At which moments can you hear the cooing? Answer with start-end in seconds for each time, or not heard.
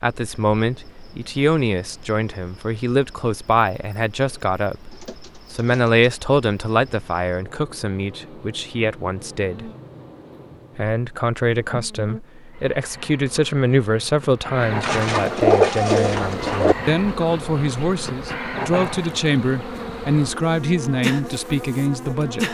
4.9-6.1, 14.8-16.8.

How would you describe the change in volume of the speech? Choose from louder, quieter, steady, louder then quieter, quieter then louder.
steady.